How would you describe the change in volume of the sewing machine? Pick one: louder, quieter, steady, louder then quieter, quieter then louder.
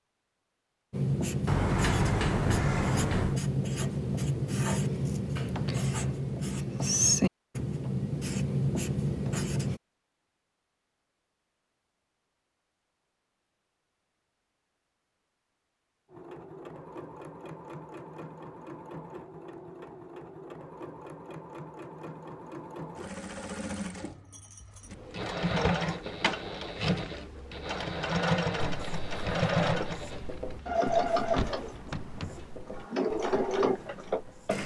louder.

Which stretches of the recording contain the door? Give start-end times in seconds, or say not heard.
1.4-3.4, 31.3-32.5.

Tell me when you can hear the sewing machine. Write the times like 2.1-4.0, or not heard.
16.1-34.6.